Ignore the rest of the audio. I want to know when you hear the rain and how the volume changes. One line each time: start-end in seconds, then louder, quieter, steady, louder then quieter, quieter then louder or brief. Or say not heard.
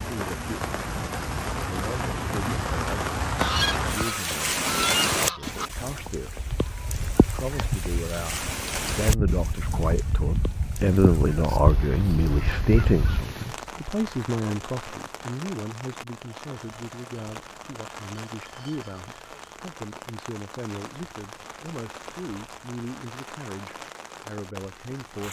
0.0-25.2 quieter.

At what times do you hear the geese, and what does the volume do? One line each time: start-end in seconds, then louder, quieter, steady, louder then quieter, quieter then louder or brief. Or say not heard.
3.4-13.2 quieter then louder.